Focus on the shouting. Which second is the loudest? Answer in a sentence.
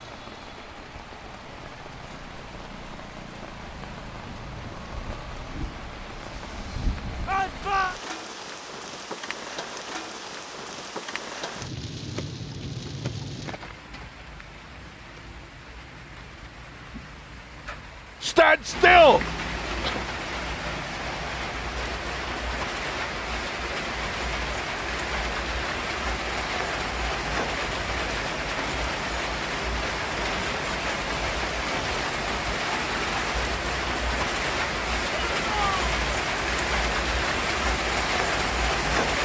The volume of the shouting peaks at 19 seconds.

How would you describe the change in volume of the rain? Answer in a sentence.
The volume of the rain goes up.